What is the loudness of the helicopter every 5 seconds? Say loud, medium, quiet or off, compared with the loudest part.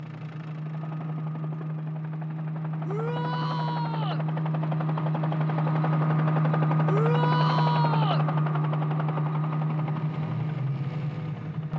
medium, loud, medium.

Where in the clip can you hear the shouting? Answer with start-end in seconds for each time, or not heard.
2.9-4.2, 6.8-8.2.